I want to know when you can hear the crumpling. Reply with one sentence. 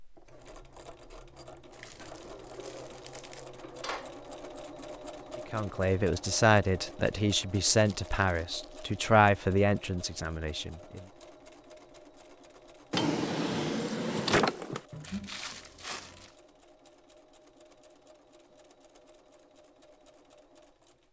You can hear the crumpling from 1.7 to 3.5 s, from 7.7 to 9.0 s and from 14.9 to 16.4 s.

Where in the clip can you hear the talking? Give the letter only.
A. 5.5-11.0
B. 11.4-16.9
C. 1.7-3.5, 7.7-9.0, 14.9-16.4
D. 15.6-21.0
A.